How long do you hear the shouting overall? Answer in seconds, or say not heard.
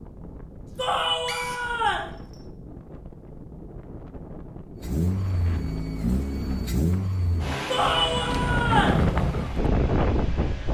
3 s.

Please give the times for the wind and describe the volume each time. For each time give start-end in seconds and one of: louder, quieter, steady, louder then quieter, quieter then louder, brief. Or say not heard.
0.0-10.6 louder.